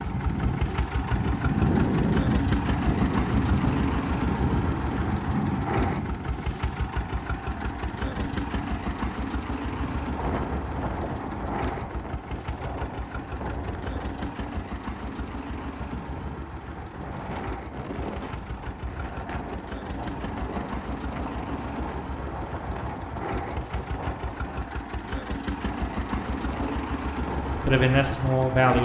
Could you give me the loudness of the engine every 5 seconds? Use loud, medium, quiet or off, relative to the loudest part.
loud, loud, medium, medium, medium, loud.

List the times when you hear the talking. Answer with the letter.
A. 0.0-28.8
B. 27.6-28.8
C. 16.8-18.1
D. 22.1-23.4
B.